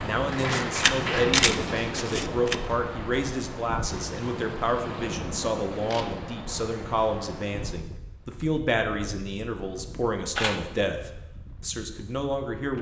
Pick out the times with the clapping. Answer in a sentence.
You can hear the clapping from 0.3 to 1.9 s.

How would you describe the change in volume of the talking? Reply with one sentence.
The loudness of the talking stays about the same.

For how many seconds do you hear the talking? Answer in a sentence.
You can hear the talking for 13 seconds altogether.